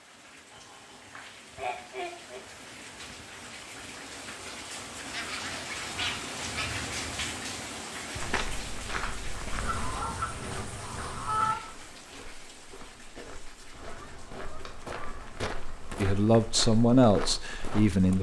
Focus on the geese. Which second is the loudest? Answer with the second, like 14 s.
11 s.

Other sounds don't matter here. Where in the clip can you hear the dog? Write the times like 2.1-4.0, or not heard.
not heard.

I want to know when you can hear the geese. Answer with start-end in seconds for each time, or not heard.
0.5-2.4, 5.1-6.8, 9.6-11.6, 13.7-16.1.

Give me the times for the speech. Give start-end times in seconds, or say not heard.
16.0-18.1.